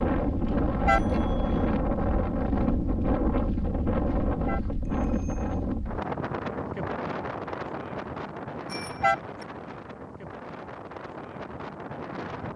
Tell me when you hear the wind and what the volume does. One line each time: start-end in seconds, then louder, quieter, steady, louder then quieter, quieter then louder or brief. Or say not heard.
0.0-12.5 quieter.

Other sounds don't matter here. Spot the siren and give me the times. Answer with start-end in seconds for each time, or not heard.
not heard.